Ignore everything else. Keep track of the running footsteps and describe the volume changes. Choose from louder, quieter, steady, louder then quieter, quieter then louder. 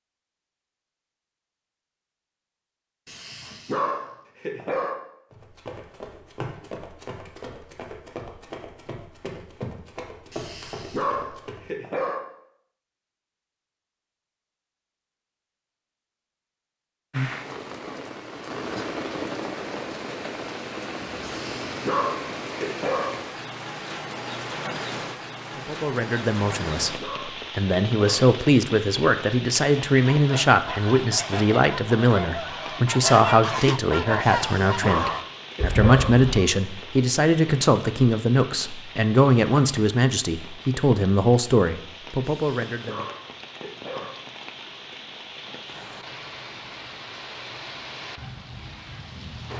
steady.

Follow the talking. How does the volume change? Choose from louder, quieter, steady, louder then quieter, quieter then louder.
steady.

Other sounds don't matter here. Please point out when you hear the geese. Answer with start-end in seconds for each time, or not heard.
30.1-36.5.